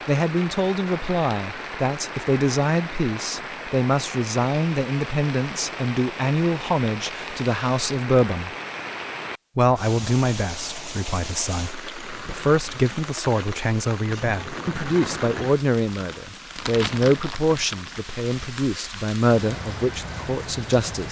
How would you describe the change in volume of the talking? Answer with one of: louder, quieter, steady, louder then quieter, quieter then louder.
steady.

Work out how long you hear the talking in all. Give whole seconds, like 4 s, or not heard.
20 s.